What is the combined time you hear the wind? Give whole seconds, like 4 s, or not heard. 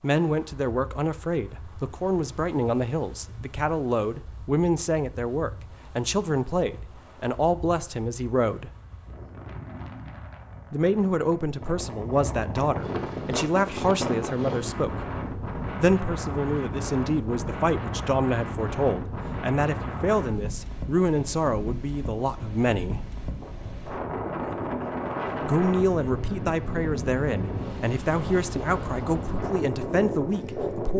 31 s.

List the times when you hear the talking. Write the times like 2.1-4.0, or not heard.
0.0-8.7, 10.7-15.0, 15.8-23.1, 25.4-30.9.